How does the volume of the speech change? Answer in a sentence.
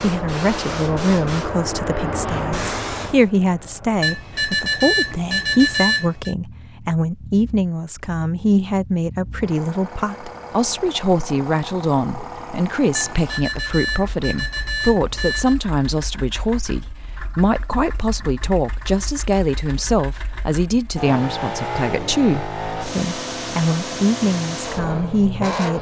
The loudness of the speech stays about the same.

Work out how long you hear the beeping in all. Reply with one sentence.
You can hear the beeping for 5 seconds altogether.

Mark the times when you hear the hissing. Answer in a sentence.
You can hear the hissing from 0.0 to 3.3 s.